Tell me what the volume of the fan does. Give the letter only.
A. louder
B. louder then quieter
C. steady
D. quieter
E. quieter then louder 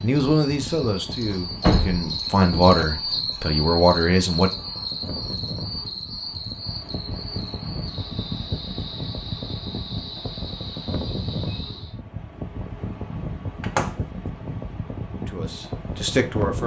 A.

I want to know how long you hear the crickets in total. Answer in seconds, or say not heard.
12 s.